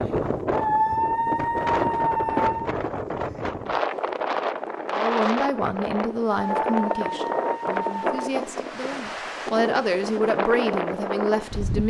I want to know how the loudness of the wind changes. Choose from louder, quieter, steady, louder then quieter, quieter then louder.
steady.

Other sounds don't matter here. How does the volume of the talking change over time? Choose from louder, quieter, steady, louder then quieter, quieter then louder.
quieter then louder.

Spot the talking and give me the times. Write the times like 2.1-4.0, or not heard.
4.9-11.8.